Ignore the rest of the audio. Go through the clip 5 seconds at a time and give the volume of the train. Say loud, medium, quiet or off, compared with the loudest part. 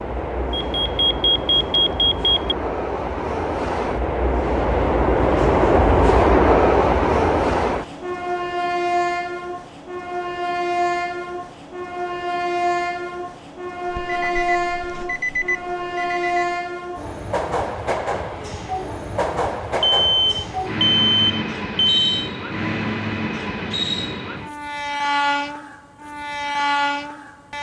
medium, loud, medium, medium, medium, medium.